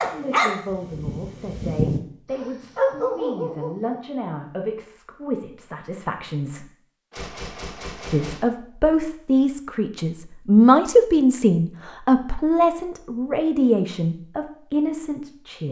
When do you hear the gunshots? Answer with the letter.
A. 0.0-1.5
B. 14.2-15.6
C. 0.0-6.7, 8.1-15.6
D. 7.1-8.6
D.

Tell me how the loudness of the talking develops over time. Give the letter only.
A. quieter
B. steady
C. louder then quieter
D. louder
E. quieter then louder
C.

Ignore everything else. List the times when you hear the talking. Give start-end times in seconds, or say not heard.
0.0-6.7, 8.1-15.6.